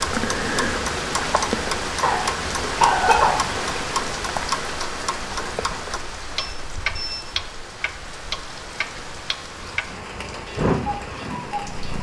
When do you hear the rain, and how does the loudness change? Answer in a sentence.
You can hear the rain from 0.0 to 11.9 s, getting quieter.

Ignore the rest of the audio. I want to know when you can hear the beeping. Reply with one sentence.
You can hear the beeping from 6.3 to 7.2 s.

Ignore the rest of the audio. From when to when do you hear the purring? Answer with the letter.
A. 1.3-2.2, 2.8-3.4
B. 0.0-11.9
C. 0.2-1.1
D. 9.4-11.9
D.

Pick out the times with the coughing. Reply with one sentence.
You can hear the coughing from 1.3 to 2.2 s and from 2.8 to 3.4 s.